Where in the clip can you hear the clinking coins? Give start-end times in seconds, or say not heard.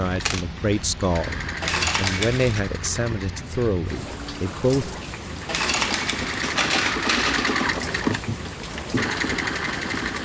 1.6-2.6, 5.5-7.7.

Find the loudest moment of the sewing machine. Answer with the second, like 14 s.
8 s.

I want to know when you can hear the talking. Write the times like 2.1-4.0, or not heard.
0.0-5.0.